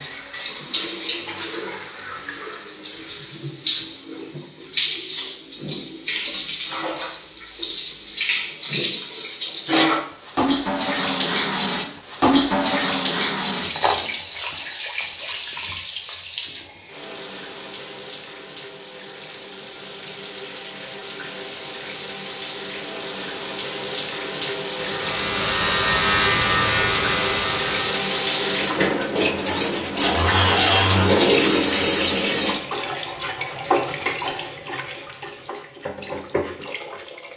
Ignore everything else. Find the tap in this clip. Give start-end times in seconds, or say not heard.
0.0-37.3.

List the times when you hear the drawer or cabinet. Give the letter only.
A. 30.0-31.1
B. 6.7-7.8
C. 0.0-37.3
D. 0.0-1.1
A.